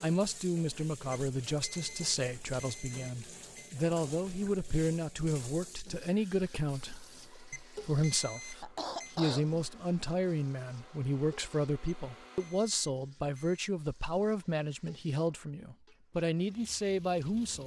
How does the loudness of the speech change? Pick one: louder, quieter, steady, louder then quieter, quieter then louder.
steady.